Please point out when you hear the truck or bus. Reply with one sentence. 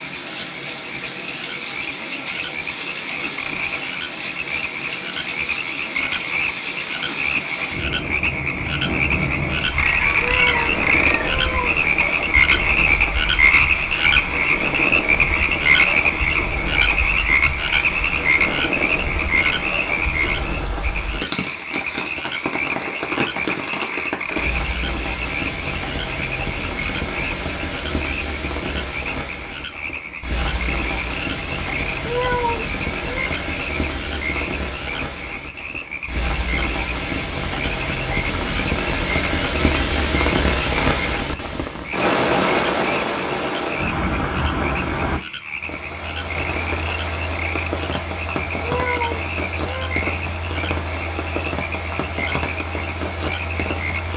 You can't hear the truck or bus here.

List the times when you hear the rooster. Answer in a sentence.
You can hear the rooster from 9.8 to 11.3 s.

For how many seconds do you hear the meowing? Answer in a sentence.
You can hear the meowing for 4 seconds altogether.